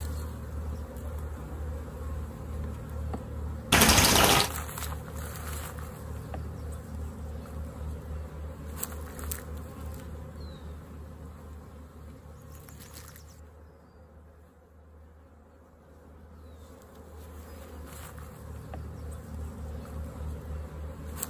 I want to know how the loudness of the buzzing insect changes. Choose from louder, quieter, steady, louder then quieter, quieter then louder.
quieter then louder.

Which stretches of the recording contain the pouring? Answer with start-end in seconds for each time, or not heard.
3.7-4.5.